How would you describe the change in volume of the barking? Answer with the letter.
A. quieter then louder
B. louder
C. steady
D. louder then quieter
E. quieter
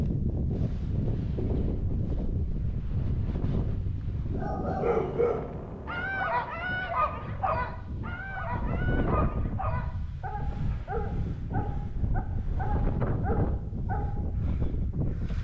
E.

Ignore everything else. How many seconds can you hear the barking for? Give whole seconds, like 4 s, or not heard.
10 s.